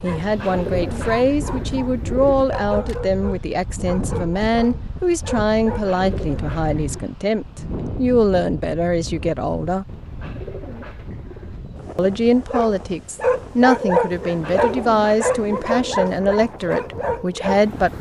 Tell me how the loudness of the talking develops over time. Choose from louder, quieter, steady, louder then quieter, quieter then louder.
steady.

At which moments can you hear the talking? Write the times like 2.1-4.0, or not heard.
0.0-9.8, 11.9-17.9.